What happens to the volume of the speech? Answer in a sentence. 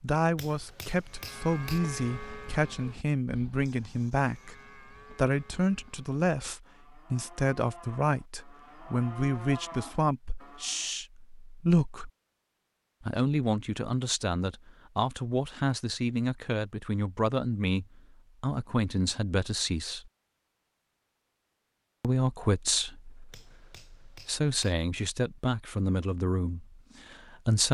The volume of the speech stays about the same.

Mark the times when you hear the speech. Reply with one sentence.
The speech can be heard from 0.0 to 12.1 s, from 13.0 to 20.1 s and from 22.0 to 27.6 s.